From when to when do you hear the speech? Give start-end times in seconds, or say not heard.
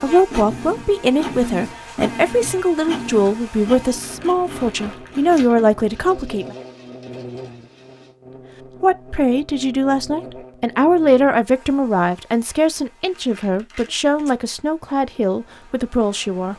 0.0-6.5, 8.8-16.5.